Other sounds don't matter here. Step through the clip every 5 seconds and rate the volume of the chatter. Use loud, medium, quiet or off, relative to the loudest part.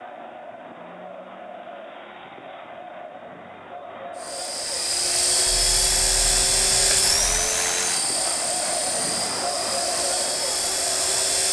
medium, loud, loud.